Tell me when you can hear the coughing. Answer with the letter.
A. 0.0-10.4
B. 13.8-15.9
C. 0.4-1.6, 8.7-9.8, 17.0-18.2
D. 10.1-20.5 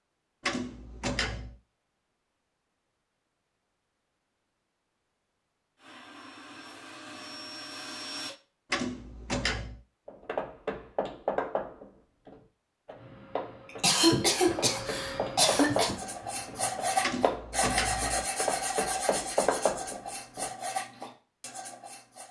B.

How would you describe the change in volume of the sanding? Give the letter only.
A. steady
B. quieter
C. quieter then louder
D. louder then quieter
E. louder
B.